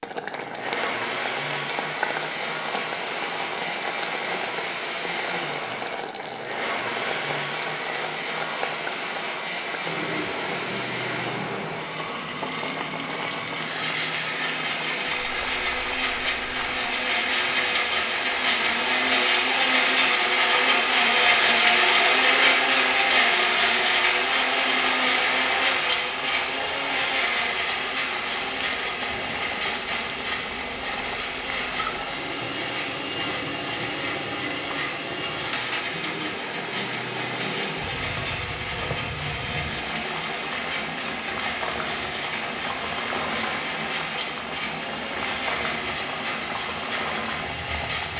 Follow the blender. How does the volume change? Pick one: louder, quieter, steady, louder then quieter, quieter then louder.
louder then quieter.